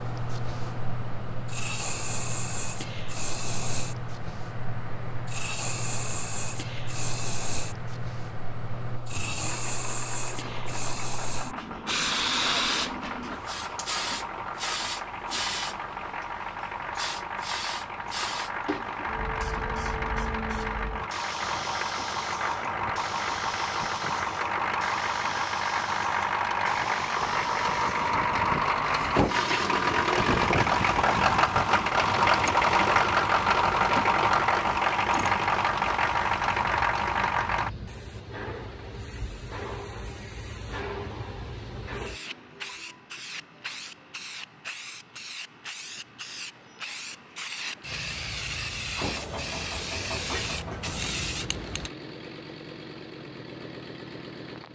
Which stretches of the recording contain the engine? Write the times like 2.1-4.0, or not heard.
0.0-37.7, 49.0-54.7.